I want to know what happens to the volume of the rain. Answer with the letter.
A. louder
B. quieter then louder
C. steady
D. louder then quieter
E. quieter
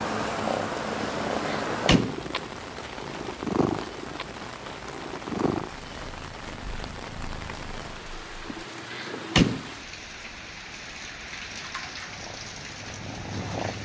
C.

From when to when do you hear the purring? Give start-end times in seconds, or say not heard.
0.0-8.6, 12.1-13.8.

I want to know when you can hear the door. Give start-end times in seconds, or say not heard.
1.0-2.2, 8.5-9.7.